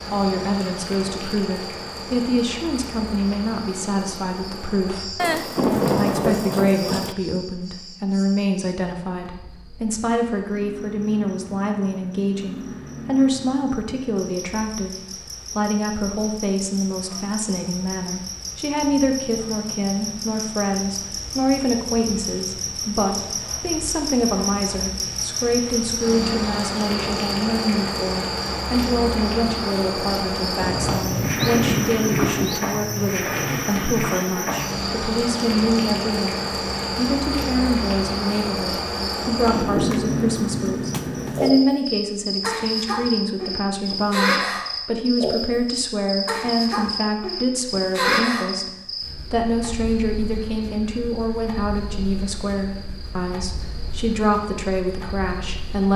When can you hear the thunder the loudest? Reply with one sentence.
The volume of the thunder peaks at 6 seconds.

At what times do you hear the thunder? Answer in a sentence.
You can hear the thunder from 5.2 to 7.2 s, from 30.6 to 32.6 s and from 39.5 to 41.5 s.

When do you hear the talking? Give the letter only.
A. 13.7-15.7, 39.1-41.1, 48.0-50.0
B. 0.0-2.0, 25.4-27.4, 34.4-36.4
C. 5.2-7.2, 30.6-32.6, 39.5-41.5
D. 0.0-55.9
D.